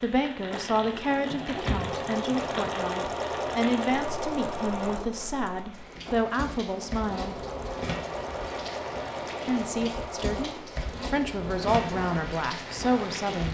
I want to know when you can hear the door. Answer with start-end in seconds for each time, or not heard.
1.1-2.6.